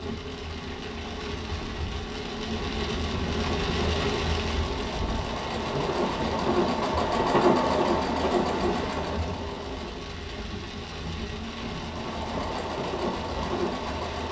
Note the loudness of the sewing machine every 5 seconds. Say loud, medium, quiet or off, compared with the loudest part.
medium, loud, medium.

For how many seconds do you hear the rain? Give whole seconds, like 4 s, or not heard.
14 s.